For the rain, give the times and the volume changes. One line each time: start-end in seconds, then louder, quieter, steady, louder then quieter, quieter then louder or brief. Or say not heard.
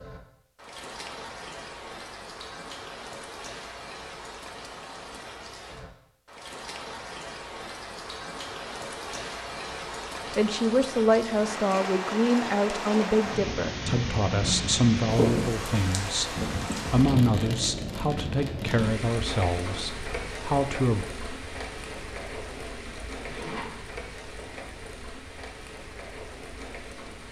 0.0-27.2 louder then quieter.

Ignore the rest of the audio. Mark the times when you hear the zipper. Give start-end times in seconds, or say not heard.
23.2-24.1.